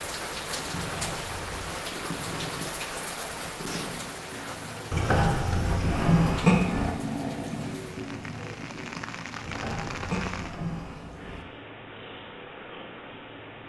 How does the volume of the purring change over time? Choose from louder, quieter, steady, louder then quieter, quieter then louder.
louder then quieter.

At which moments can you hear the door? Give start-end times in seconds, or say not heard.
0.7-1.8, 4.9-6.9, 9.4-11.4.